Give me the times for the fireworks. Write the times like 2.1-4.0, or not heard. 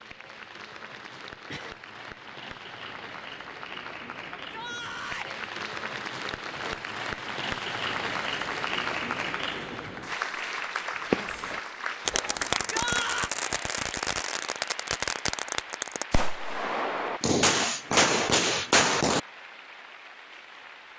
11.1-19.2.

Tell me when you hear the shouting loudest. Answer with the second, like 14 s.
13 s.